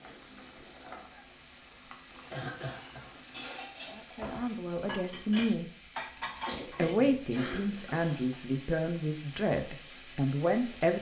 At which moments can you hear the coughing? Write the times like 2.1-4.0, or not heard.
2.2-3.1, 6.5-8.2.